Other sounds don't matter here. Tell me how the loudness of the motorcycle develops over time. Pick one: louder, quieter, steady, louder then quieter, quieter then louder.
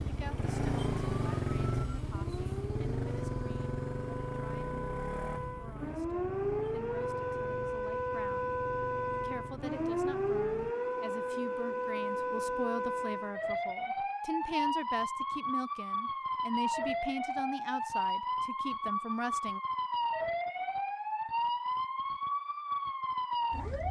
quieter.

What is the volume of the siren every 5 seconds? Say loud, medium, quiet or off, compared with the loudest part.
medium, loud, loud, loud, loud.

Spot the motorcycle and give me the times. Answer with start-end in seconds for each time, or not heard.
0.0-10.8.